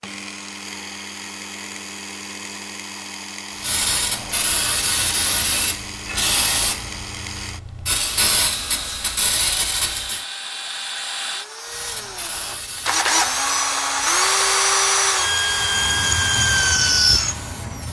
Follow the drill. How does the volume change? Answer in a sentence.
The volume of the drill goes up.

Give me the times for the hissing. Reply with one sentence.
The hissing can be heard from 3.5 to 10.2 s and from 11.7 to 17.8 s.